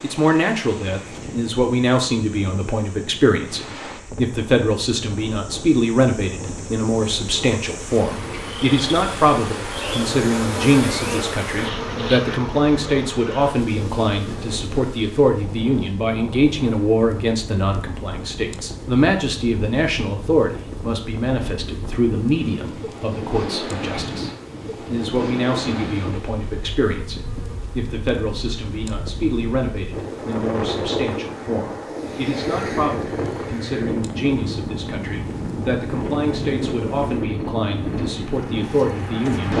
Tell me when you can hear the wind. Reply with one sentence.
You can hear the wind from 0.0 to 39.5 s.